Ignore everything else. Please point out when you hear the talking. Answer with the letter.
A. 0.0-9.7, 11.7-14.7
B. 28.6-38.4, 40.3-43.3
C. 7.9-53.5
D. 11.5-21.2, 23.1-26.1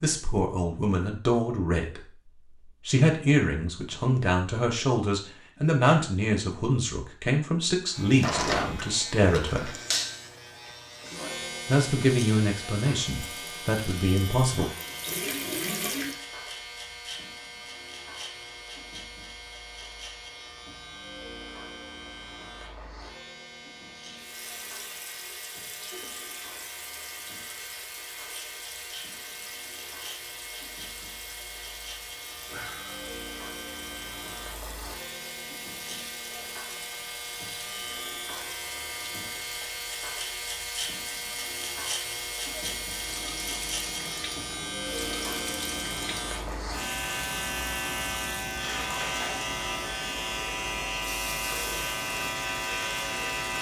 A.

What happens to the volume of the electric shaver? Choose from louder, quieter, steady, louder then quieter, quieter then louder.
quieter then louder.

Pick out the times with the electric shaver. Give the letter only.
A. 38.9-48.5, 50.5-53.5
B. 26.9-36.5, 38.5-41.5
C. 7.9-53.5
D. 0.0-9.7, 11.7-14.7
C.